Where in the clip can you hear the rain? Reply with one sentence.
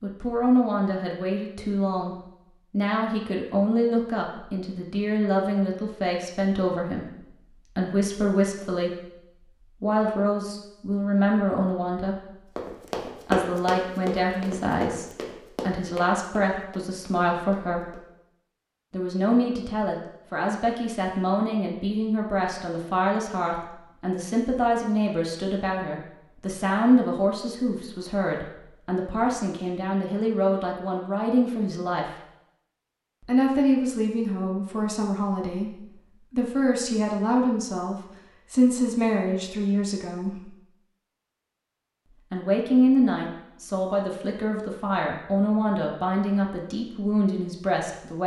The rain can't be heard in this clip.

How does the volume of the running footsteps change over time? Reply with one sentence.
The loudness of the running footsteps goes down.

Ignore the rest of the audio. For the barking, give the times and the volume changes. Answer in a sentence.
The barking can't be heard in this clip.